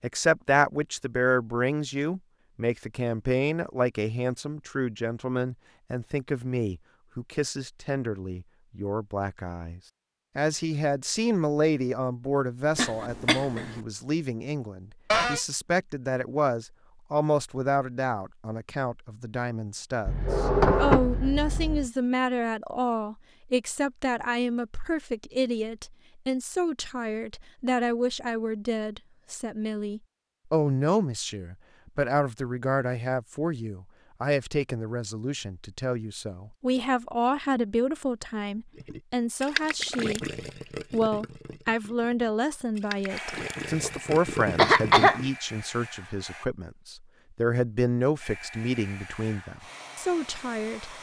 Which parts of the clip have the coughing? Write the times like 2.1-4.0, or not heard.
12.8-13.8, 44.5-45.2.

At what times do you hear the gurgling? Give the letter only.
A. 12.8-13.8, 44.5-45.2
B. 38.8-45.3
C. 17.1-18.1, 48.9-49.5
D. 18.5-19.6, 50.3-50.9
B.